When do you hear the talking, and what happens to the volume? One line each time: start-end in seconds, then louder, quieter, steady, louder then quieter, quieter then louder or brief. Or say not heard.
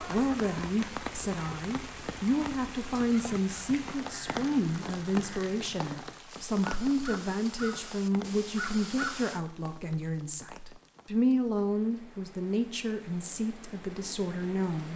0.0-14.9 steady.